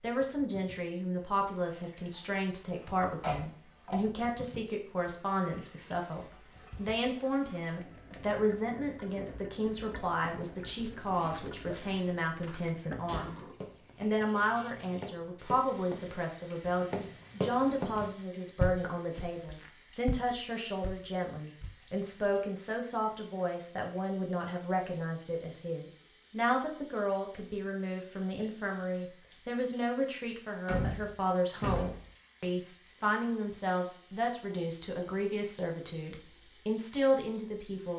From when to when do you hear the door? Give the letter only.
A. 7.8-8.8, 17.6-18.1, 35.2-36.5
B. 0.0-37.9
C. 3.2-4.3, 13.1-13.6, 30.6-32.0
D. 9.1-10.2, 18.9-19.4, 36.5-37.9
C.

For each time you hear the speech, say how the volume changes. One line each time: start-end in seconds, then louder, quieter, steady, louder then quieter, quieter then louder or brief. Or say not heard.
0.0-37.9 steady.